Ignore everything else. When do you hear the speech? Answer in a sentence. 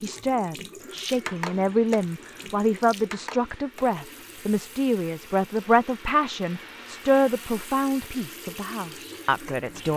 You can hear the speech from 0.0 to 9.9 s.